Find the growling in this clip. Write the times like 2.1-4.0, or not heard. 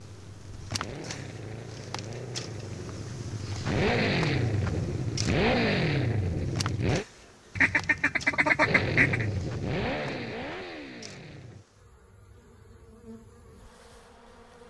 not heard.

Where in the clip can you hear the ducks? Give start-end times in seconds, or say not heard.
7.5-9.2.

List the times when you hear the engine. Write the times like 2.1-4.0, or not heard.
0.0-7.0, 8.6-11.7.